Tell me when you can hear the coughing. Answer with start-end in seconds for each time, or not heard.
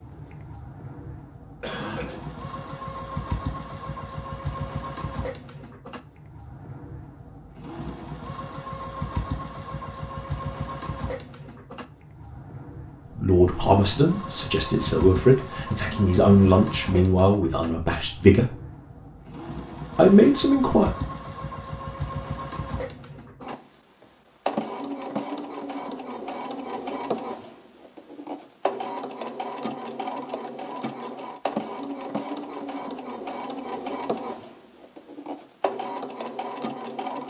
1.6-2.2.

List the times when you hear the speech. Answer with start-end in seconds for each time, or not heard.
13.2-18.6, 19.9-20.9.